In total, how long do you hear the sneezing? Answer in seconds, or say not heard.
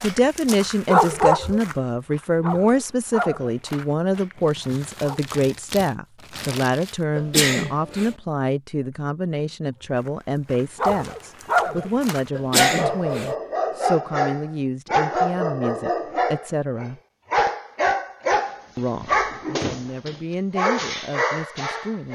2 s.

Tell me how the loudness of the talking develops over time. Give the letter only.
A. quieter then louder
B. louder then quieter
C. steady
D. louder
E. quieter
E.